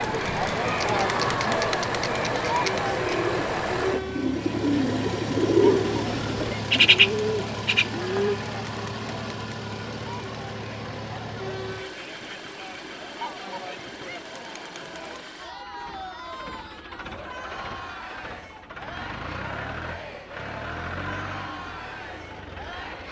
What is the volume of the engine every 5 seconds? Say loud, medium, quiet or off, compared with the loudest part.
loud, loud, medium, medium, medium.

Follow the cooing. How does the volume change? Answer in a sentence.
The loudness of the cooing goes up.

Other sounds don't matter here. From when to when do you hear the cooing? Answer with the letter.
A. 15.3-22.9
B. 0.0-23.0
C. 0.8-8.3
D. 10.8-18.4
C.